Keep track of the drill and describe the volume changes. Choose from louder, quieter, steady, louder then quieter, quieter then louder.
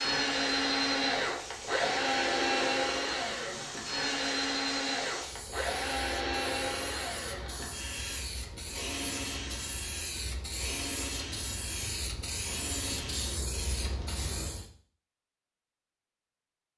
quieter.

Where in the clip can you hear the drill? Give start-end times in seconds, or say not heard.
0.0-14.2.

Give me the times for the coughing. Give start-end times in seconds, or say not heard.
not heard.